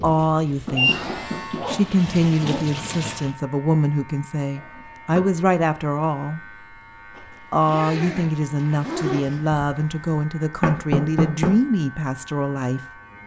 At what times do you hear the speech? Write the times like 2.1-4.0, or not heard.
0.0-6.5, 7.5-13.2.